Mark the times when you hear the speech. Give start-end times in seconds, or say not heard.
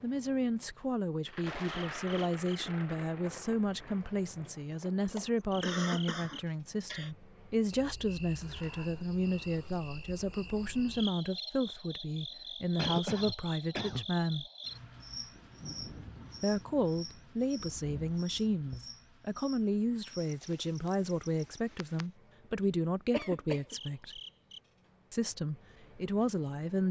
0.0-14.4, 16.4-24.2, 25.1-26.8.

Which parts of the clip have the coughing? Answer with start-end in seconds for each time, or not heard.
5.2-7.1, 12.8-14.1, 23.1-23.8.